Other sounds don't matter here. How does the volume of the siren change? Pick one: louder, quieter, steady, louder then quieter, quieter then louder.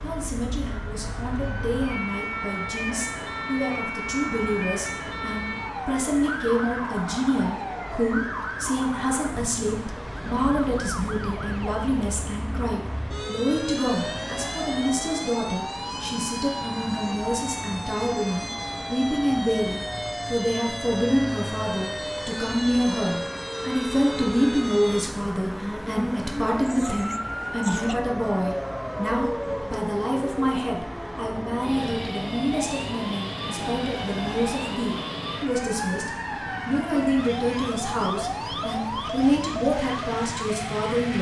steady.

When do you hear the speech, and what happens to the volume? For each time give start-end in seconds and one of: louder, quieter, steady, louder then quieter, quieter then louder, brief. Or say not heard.
0.0-41.1 steady.